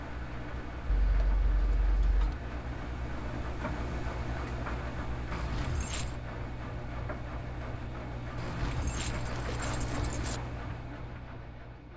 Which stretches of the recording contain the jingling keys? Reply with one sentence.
The jingling keys can be heard from 0.8 to 2.4 s, from 5.3 to 6.2 s and from 8.3 to 10.4 s.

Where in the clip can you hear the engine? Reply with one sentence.
The engine can be heard from 0.0 to 11.9 s.